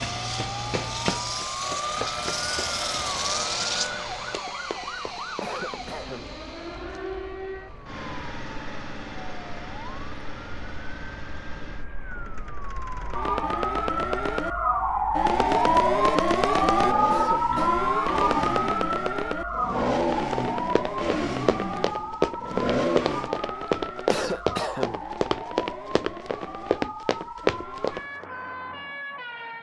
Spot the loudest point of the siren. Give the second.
16 s.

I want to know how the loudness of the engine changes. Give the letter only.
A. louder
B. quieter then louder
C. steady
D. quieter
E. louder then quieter
B.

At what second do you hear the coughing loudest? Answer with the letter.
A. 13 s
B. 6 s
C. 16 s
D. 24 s
D.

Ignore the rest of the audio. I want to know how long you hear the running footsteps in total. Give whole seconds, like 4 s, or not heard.
14 s.